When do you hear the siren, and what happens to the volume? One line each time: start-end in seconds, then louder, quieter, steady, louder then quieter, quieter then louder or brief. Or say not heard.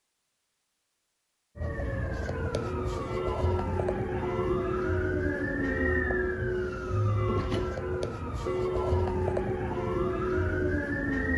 1.6-11.3 steady.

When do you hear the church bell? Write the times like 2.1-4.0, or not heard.
2.6-10.8.